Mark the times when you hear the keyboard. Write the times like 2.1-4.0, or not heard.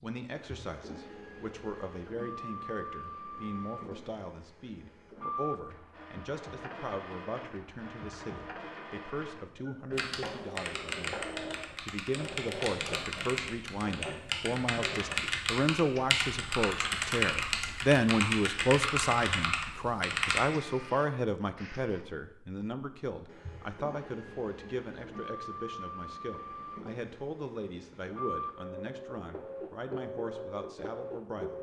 9.9-20.4.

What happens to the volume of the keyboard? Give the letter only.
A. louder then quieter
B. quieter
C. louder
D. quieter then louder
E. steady
C.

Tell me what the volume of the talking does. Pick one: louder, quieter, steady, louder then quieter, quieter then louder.
louder then quieter.